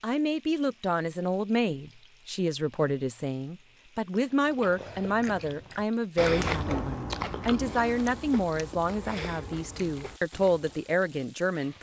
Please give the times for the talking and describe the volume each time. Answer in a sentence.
You can hear the talking from 0.0 to 11.7 s, at a steady volume.